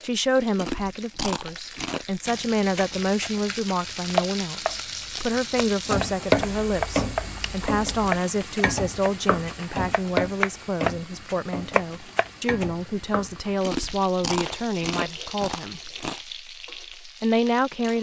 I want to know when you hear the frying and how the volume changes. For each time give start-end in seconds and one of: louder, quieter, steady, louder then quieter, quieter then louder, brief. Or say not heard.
0.0-17.9 louder then quieter.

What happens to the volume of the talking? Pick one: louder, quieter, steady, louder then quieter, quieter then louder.
steady.